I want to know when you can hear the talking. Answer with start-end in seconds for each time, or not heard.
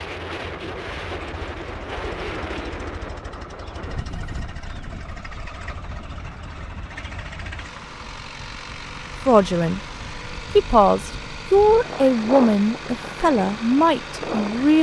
9.2-9.8, 10.6-14.7.